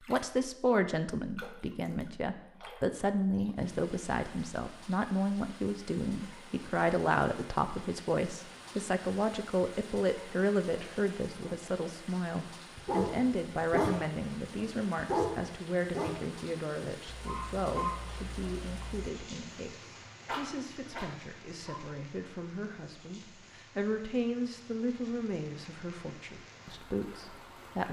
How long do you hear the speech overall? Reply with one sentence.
The speech can be heard for 28 seconds in total.